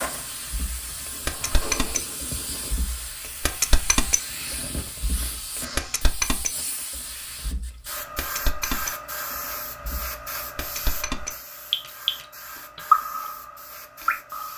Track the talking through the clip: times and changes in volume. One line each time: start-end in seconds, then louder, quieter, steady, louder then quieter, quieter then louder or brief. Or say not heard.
not heard.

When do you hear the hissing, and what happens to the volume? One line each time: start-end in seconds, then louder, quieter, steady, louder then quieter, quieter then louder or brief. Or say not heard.
0.0-14.5 quieter.